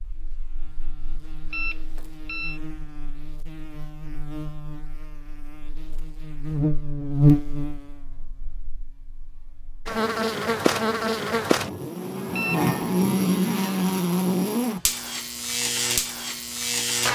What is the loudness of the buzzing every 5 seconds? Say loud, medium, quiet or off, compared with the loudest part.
quiet, loud, loud, loud.